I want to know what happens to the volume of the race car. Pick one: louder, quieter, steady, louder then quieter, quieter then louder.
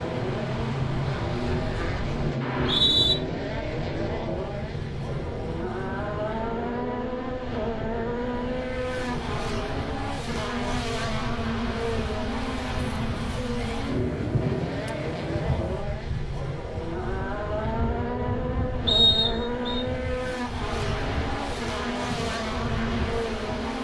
steady.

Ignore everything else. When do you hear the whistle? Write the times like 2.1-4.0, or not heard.
2.4-3.1, 18.9-19.8.